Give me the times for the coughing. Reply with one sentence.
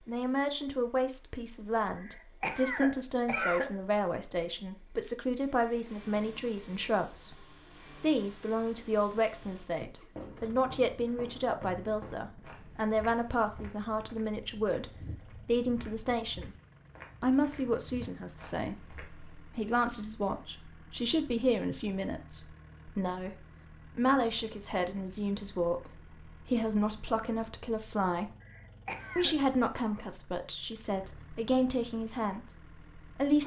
The coughing can be heard from 1.9 to 3.8 s and from 28.4 to 29.4 s.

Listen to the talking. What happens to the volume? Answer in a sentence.
The loudness of the talking stays about the same.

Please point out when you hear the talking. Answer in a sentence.
You can hear the talking from 0.1 to 16.6 s, from 17.2 to 28.3 s and from 29.1 to 33.4 s.